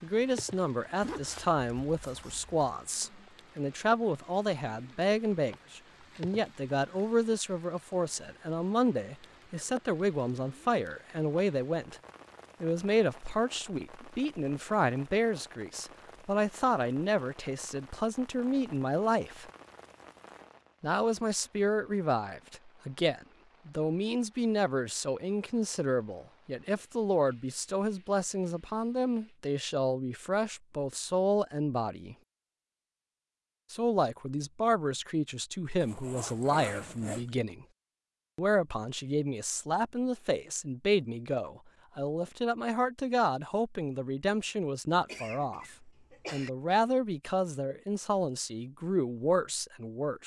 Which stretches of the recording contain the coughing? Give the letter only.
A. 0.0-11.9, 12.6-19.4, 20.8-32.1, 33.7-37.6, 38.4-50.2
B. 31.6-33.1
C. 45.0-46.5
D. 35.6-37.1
C.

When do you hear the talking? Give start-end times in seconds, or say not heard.
0.0-11.9, 12.6-19.4, 20.8-32.1, 33.7-37.6, 38.4-50.2.